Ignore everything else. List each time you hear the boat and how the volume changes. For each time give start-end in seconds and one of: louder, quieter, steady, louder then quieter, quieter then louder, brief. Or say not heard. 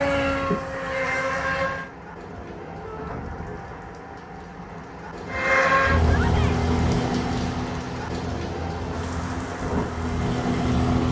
0.0-1.9 brief
5.2-11.0 quieter then louder.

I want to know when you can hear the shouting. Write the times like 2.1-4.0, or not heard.
2.8-3.2, 6.0-6.6.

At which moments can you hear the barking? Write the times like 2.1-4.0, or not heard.
not heard.